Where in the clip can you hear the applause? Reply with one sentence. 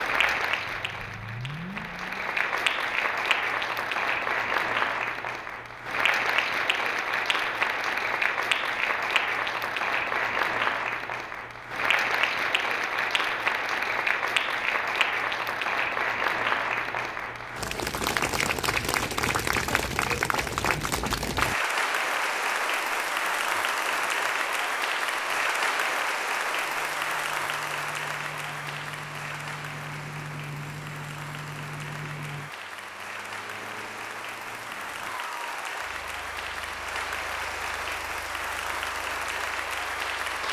You can hear the applause from 0.0 to 40.4 s.